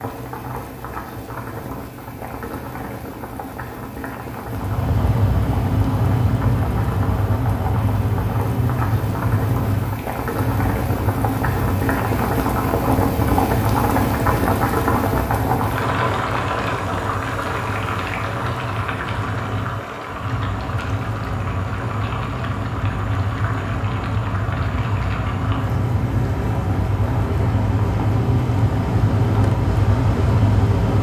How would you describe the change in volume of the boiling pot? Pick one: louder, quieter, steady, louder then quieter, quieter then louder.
louder then quieter.